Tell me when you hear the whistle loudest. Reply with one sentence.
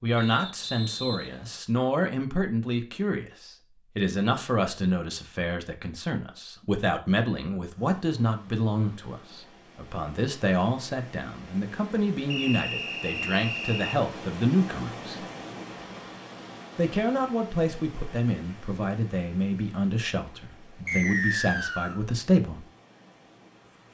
The loudest moment of the whistle is at 21 seconds.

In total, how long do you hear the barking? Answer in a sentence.
You can't hear the barking here.